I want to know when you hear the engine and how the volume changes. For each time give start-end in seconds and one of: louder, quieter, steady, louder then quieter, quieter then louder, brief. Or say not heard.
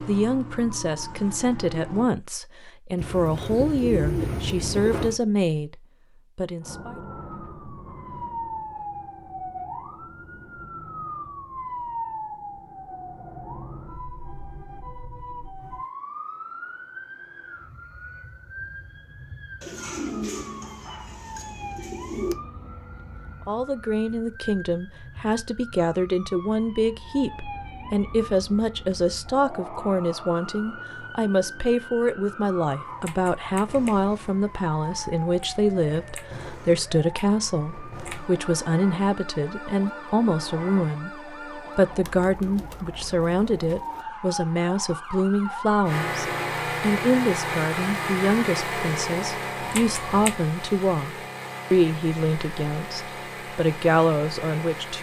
45.8-54.9 quieter.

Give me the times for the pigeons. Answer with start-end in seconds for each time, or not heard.
3.0-5.2, 19.6-22.4, 42.0-44.0.